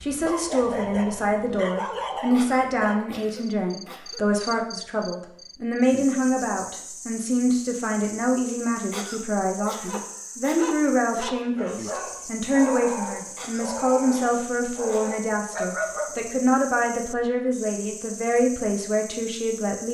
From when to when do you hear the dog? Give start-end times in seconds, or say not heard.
0.0-3.0, 9.8-16.2.